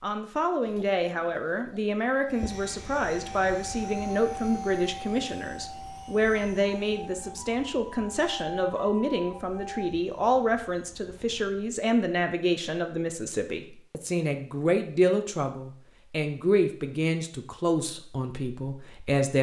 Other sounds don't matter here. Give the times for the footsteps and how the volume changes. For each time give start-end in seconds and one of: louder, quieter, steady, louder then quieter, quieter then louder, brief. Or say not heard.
not heard.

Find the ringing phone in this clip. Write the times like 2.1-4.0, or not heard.
not heard.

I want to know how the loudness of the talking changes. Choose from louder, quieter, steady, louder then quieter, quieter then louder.
steady.